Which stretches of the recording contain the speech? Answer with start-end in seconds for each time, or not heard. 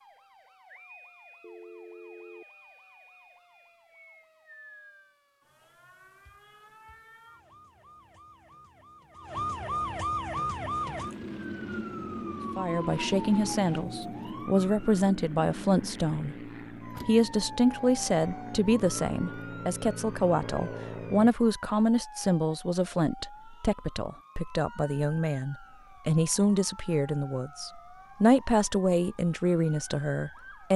12.6-30.7.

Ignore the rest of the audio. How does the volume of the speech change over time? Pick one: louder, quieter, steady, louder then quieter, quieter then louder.
steady.